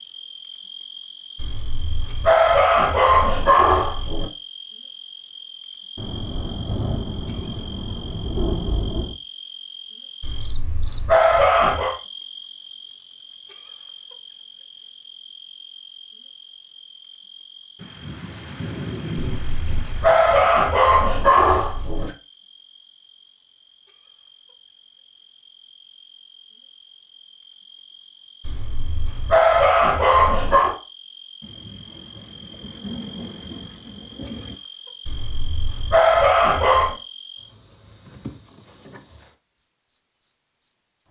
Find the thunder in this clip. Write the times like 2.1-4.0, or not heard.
6.0-9.2, 17.8-20.5, 31.4-34.5.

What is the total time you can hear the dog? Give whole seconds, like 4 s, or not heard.
12 s.